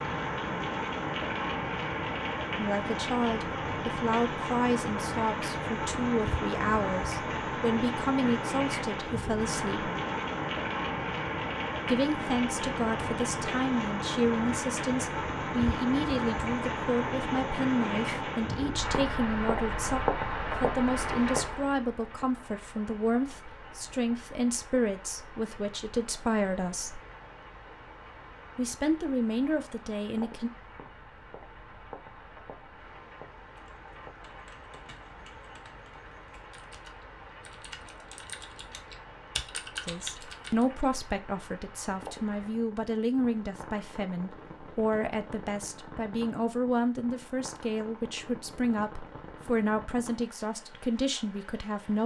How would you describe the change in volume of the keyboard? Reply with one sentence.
The volume of the keyboard goes up.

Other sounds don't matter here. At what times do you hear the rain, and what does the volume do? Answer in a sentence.
The rain can be heard from 0.0 to 52.0 s, getting quieter.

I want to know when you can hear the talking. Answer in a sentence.
You can hear the talking from 2.5 to 9.9 s, from 11.8 to 27.0 s, from 28.6 to 30.5 s and from 39.9 to 52.0 s.